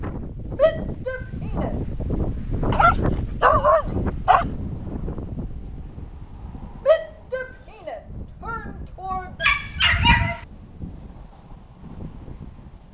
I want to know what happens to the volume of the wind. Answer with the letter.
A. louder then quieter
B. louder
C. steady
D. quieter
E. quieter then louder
D.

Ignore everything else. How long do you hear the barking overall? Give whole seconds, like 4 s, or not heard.
3 s.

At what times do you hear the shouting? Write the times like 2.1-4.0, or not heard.
0.6-1.8, 6.8-9.4.